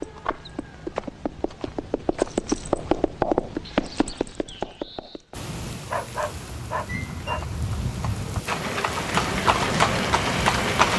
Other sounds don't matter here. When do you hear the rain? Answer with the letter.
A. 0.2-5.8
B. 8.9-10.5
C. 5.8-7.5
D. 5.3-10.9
D.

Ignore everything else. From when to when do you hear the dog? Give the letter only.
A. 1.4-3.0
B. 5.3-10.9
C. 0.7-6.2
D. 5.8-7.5
D.